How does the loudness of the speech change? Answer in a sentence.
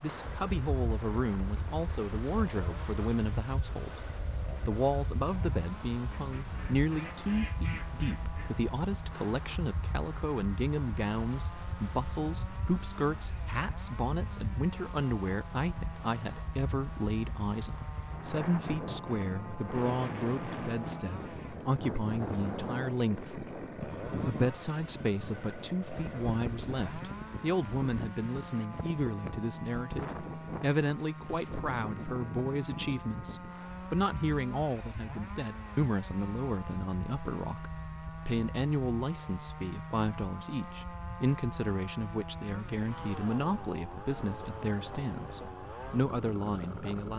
The volume of the speech stays about the same.